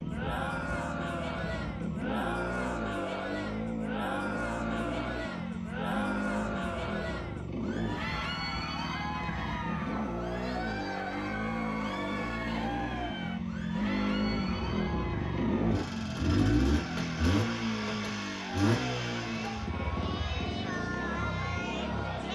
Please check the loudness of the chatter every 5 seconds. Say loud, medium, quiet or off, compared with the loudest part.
loud, loud, loud, medium, loud.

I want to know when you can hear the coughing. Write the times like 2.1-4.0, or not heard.
not heard.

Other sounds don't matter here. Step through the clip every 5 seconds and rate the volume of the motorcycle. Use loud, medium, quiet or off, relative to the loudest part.
medium, medium, loud, loud, medium.